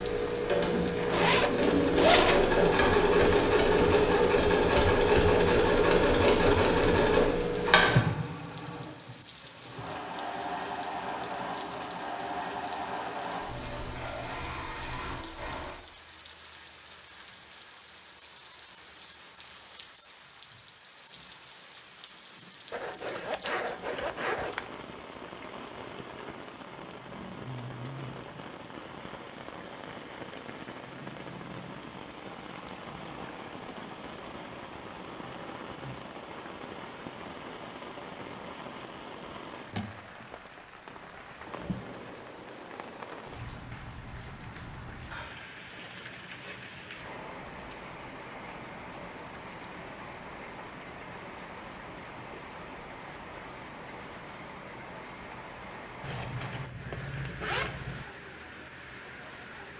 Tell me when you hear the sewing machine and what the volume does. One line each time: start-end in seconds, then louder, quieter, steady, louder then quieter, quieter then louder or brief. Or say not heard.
0.0-15.8 quieter.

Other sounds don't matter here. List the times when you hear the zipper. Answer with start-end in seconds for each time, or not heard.
0.9-2.5, 22.7-24.7, 56.0-58.0.